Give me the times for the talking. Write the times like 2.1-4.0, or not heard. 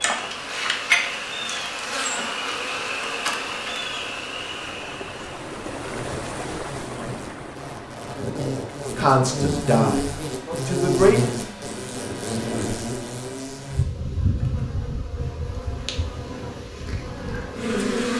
8.9-11.3.